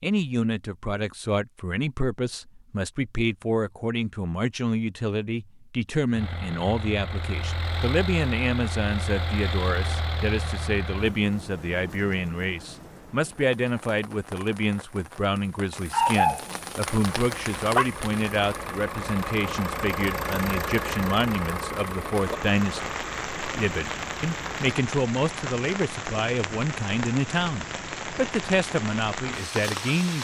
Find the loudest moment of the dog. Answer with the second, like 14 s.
16 s.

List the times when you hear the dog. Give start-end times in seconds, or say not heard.
15.9-17.9.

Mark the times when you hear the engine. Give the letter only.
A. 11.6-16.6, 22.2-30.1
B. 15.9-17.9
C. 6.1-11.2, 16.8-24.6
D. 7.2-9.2
C.